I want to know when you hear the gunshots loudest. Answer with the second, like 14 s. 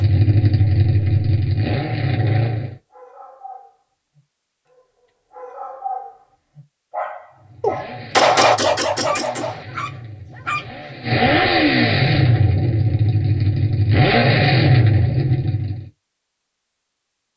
8 s.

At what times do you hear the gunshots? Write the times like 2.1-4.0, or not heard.
7.6-9.6.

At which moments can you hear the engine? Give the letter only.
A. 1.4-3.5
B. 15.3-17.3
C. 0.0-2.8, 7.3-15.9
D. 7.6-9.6
C.